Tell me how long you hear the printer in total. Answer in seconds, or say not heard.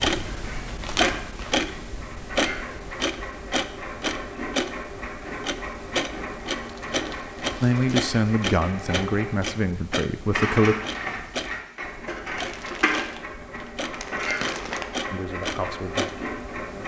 17 s.